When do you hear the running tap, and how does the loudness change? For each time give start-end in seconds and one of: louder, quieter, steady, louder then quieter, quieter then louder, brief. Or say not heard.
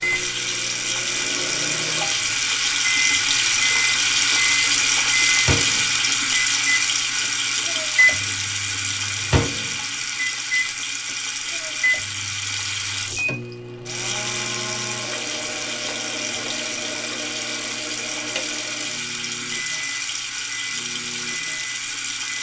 0.0-22.3 quieter.